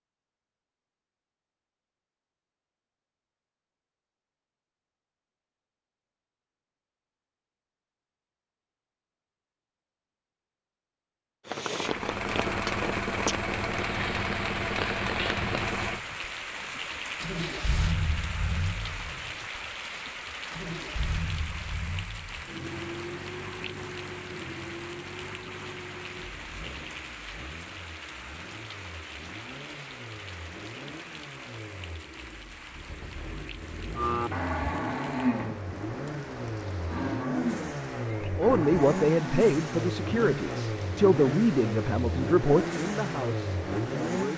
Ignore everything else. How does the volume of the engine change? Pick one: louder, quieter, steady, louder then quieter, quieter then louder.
quieter then louder.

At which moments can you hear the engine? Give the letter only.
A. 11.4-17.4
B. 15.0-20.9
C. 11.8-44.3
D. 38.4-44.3
C.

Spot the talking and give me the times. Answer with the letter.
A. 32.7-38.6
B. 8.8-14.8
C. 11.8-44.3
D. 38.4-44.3
D.